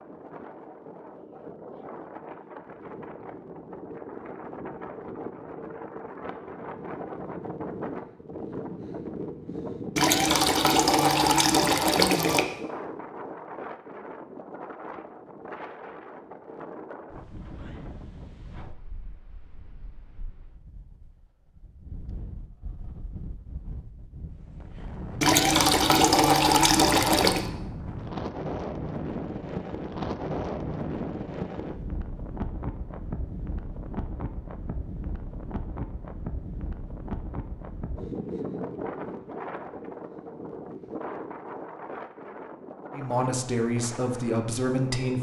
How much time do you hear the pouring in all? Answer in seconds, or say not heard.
5 s.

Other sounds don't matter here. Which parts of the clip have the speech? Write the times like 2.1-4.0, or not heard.
42.9-45.1.